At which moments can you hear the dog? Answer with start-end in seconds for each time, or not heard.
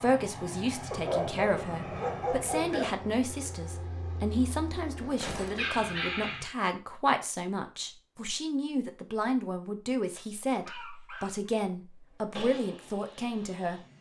0.9-2.9, 5.5-6.5, 10.1-11.6.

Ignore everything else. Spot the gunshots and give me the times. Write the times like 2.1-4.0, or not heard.
5.2-5.7.